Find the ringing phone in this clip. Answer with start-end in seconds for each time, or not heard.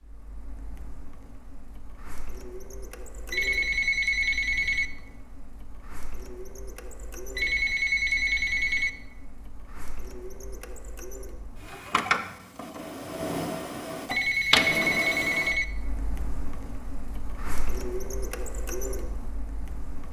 3.3-4.8, 7.3-8.9, 14.1-15.7.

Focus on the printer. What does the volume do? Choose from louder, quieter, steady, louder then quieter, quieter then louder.
louder then quieter.